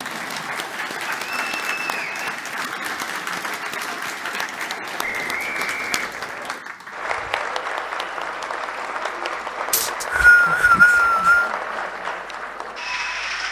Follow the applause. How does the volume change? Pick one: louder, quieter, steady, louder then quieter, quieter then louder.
steady.